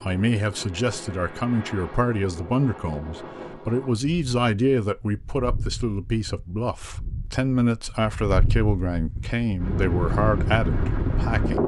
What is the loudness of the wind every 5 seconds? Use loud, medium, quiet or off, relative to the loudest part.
quiet, medium, loud.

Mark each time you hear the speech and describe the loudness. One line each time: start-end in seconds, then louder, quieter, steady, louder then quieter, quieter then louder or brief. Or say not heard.
0.0-11.6 steady.